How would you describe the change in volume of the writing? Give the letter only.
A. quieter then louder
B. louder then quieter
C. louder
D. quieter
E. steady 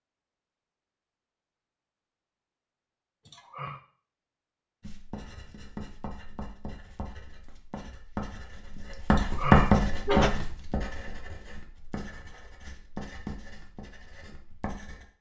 B.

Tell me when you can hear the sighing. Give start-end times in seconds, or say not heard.
3.2-3.8, 9.1-10.3.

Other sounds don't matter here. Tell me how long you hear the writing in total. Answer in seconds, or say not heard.
10 s.